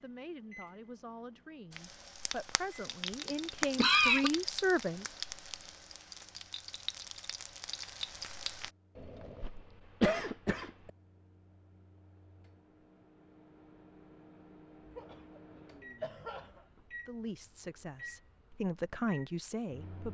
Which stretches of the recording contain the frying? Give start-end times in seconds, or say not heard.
1.7-8.7.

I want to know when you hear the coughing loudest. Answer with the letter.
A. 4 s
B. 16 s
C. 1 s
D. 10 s
A.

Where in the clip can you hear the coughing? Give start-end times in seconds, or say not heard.
3.8-4.3, 8.9-10.9, 14.9-16.8.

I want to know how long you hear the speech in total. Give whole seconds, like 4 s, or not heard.
8 s.